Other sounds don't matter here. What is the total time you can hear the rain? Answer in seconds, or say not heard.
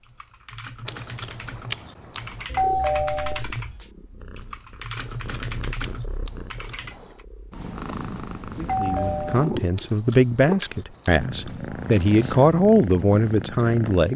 not heard.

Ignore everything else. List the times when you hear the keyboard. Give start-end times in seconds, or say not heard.
0.0-7.2.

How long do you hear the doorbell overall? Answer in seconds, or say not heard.
2 s.